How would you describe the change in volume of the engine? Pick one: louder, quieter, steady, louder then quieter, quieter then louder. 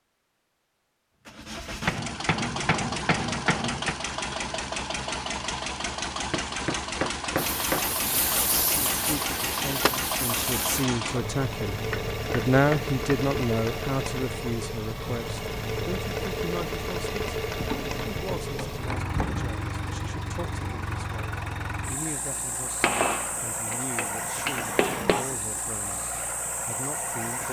steady.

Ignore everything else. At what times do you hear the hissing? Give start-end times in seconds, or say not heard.
7.3-10.9.